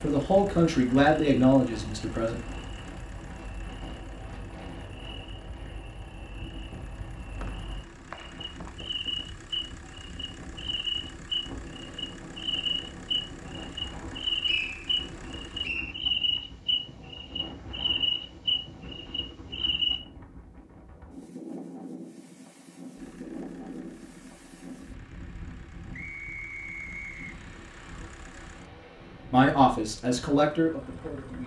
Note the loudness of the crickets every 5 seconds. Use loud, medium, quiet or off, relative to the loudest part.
quiet, medium, loud, loud, off, off, off.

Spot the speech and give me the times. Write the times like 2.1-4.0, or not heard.
0.0-2.4, 29.3-31.4.